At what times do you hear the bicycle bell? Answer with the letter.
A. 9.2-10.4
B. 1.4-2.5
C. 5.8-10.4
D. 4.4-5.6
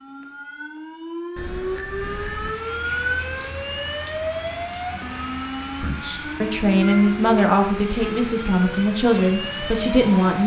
B.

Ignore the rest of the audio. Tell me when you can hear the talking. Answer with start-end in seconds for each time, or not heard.
5.8-10.4.